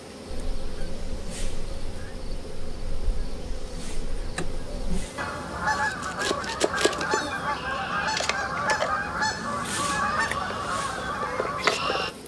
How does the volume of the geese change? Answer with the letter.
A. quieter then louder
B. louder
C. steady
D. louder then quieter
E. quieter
B.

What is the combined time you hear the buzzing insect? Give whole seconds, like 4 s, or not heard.
12 s.